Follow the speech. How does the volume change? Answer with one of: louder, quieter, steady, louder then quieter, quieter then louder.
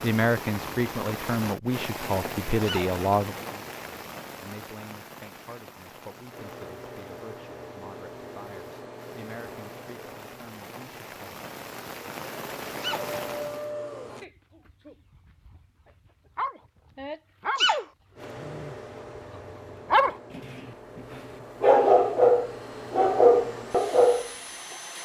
quieter.